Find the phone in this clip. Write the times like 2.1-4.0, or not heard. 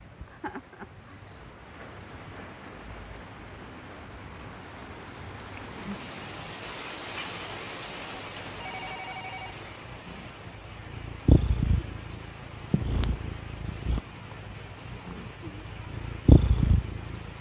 8.6-9.6.